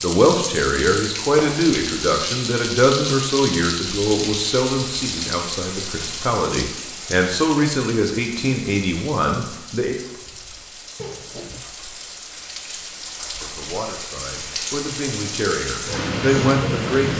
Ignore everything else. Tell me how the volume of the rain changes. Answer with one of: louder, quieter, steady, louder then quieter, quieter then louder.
quieter then louder.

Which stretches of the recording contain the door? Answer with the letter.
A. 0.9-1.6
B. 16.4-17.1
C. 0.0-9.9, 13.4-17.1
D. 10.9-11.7
D.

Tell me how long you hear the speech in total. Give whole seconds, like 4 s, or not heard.
14 s.